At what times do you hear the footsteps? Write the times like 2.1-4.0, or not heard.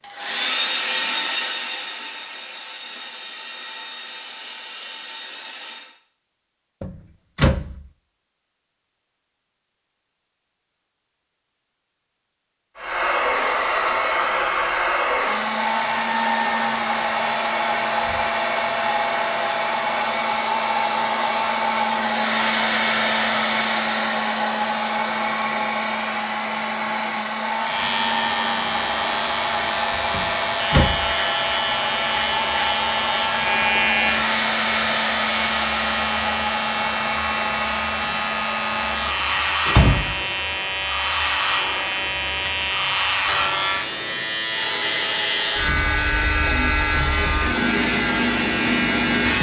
not heard.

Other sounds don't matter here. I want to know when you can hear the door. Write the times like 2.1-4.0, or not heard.
6.8-7.8, 30.1-31.1, 39.6-40.2.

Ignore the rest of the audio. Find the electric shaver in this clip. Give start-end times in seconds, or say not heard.
27.6-49.3.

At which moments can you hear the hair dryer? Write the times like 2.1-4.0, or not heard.
0.0-6.0, 12.8-49.3.